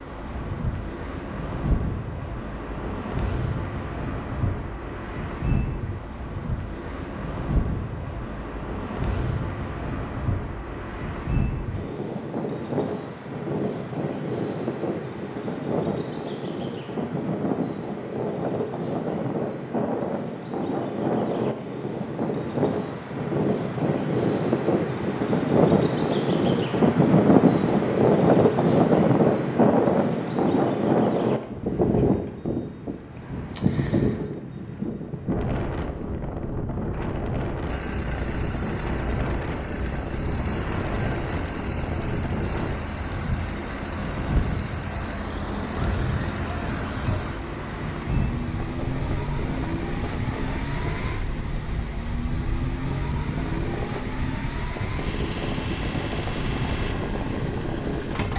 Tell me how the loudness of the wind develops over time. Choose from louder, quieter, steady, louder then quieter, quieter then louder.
louder then quieter.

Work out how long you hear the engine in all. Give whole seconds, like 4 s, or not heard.
21 s.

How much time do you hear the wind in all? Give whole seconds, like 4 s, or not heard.
58 s.